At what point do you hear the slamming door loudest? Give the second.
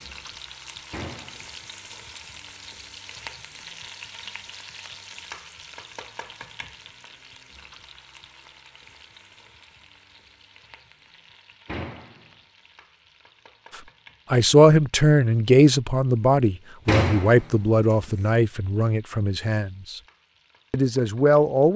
17 s.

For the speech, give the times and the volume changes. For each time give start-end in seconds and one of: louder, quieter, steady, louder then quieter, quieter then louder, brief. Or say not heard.
14.3-20.0 quieter
20.7-21.7 brief.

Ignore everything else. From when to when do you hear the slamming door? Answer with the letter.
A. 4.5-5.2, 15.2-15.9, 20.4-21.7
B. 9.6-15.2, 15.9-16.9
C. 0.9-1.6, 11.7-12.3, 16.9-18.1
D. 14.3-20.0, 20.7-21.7
C.